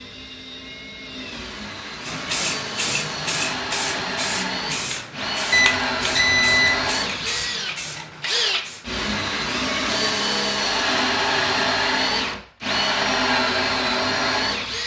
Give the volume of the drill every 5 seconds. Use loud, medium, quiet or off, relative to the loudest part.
medium, loud, loud.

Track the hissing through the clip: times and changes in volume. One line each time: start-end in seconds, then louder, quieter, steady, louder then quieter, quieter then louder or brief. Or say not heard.
2.0-9.1 quieter.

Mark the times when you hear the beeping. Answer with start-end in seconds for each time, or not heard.
5.5-6.9.